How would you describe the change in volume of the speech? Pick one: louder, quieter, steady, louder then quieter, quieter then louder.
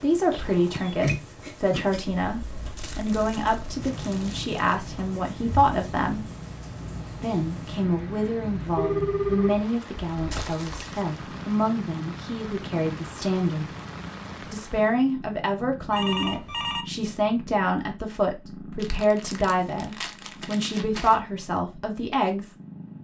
steady.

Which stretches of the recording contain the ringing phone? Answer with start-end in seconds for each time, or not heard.
0.3-1.0, 8.8-9.6, 15.9-16.9.